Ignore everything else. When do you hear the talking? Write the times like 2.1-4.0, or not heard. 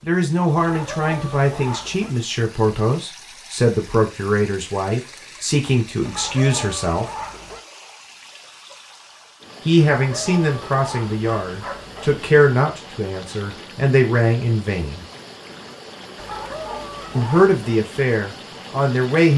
0.1-7.0, 9.7-15.1, 17.1-19.3.